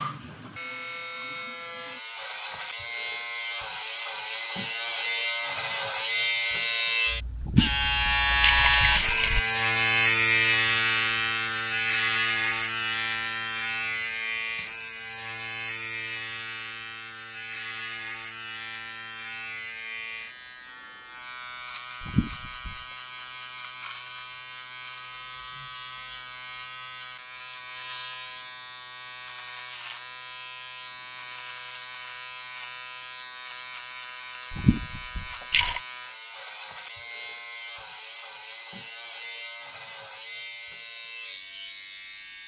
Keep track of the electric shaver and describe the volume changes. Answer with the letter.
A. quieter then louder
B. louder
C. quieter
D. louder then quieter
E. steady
C.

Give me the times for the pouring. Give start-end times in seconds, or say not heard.
7.4-9.4, 22.0-22.9, 34.5-35.9.